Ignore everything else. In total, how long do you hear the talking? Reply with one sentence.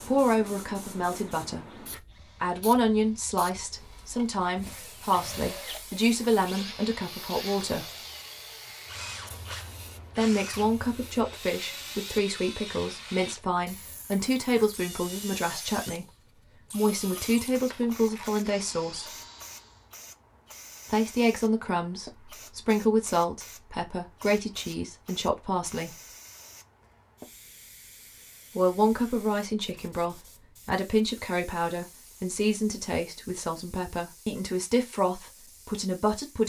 The talking can be heard for 30 seconds in total.